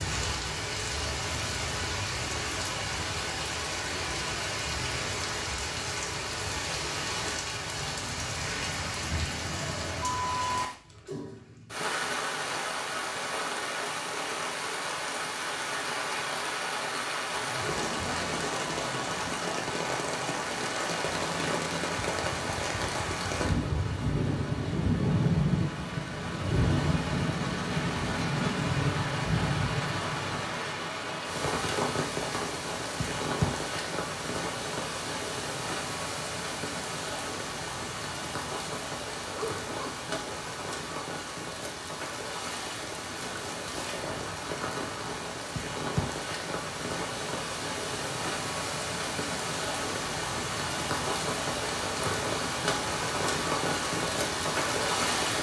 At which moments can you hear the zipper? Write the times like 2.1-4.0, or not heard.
17.3-18.3, 39.3-40.4.